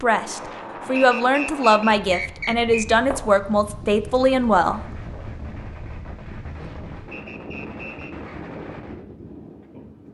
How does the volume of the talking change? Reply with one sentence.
The loudness of the talking stays about the same.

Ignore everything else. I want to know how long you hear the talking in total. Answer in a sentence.
You can hear the talking for 5 seconds altogether.